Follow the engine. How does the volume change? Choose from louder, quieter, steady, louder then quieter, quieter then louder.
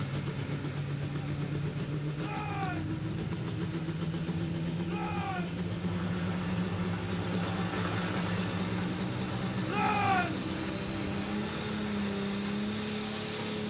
steady.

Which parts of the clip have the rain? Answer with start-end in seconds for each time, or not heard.
5.7-13.6.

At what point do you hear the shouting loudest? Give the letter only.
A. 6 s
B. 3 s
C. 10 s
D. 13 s
C.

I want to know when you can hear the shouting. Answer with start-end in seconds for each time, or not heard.
2.1-3.0, 4.8-5.6, 9.7-10.5.